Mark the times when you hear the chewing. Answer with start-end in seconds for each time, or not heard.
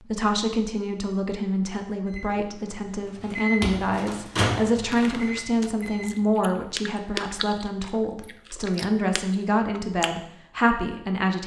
4.8-10.2.